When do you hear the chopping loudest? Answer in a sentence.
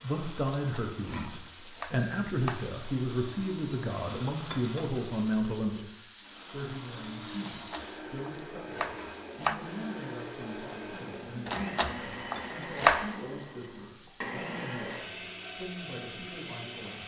The loudest moment of the chopping is at 13 seconds.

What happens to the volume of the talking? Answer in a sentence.
The loudness of the talking goes down.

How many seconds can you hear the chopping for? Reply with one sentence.
You can hear the chopping for 6 seconds altogether.